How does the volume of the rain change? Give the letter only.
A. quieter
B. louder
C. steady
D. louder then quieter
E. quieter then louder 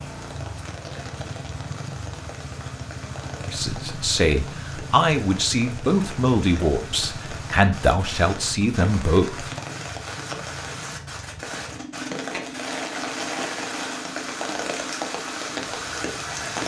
B.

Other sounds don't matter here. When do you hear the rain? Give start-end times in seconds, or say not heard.
0.0-16.6.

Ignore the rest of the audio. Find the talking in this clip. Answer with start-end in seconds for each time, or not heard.
3.5-9.5.